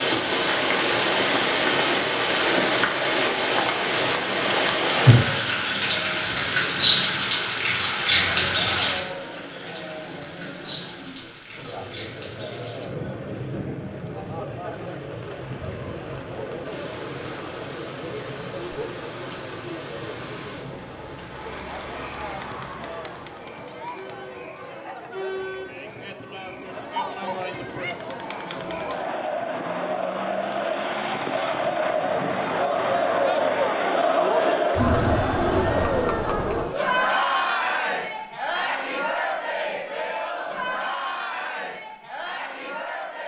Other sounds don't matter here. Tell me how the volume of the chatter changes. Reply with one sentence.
The volume of the chatter goes up.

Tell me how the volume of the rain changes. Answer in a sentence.
The volume of the rain goes down.